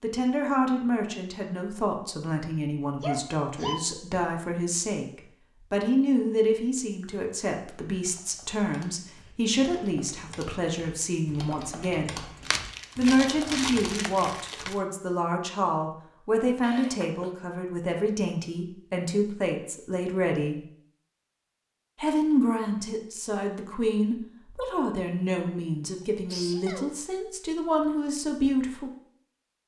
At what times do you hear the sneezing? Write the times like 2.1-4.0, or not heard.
3.0-3.8, 16.6-17.3, 26.2-26.9.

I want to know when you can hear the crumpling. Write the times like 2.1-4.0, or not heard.
12.4-14.8.